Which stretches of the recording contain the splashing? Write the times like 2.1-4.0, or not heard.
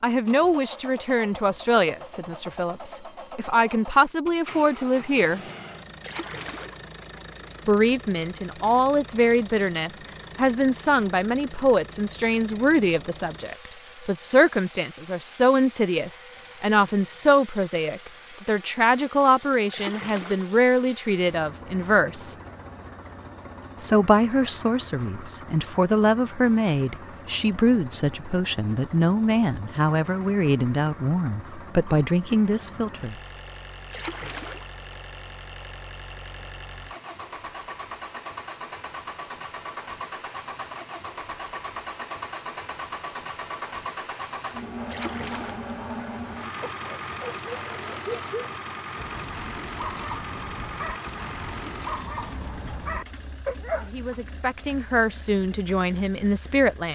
6.0-6.8, 19.7-20.5, 33.9-34.8, 44.9-45.7.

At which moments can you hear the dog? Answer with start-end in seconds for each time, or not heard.
46.6-54.1.